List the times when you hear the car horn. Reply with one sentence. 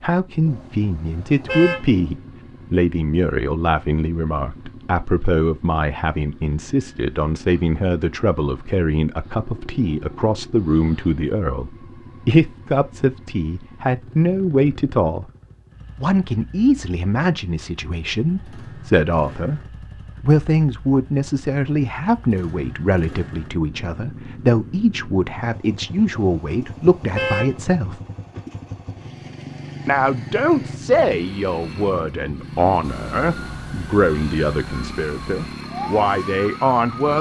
The car horn can be heard from 0.5 to 2.1 s and from 26.1 to 27.7 s.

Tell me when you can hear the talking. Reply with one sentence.
You can hear the talking from 0.0 to 15.2 s, from 15.9 to 19.6 s, from 20.2 to 28.0 s and from 29.9 to 37.1 s.